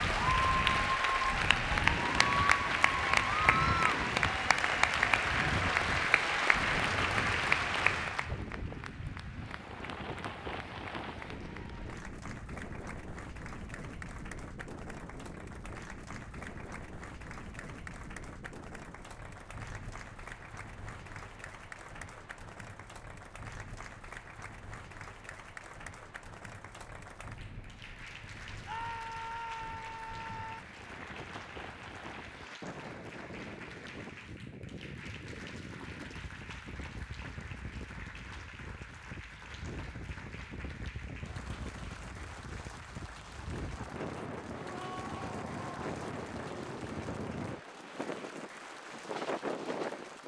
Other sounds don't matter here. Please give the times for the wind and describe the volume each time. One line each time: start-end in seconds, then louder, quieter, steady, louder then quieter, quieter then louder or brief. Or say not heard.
0.0-50.2 quieter then louder.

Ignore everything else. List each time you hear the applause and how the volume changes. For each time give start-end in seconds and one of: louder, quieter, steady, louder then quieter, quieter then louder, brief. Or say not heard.
0.0-50.2 quieter.